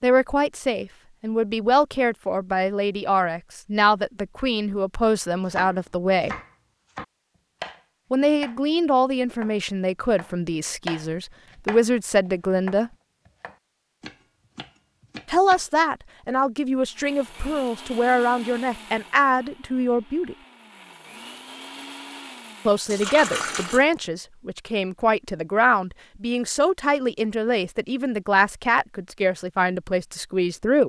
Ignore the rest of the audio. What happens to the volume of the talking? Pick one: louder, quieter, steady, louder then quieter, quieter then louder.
steady.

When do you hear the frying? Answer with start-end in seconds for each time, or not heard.
not heard.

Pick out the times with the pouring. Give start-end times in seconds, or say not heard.
22.9-23.9.